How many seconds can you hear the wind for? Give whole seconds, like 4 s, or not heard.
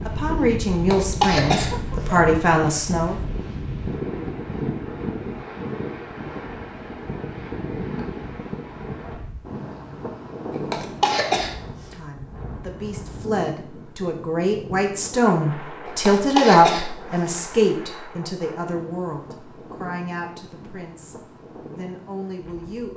23 s.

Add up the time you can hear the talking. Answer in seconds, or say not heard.
14 s.